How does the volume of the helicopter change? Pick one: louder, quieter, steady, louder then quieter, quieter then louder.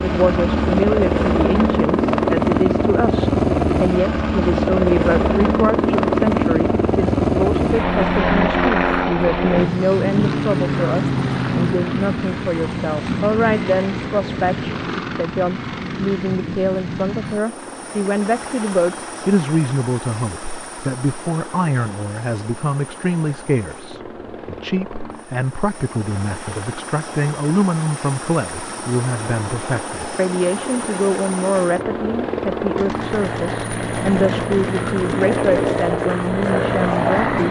quieter then louder.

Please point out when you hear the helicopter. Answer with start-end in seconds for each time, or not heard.
0.0-37.4.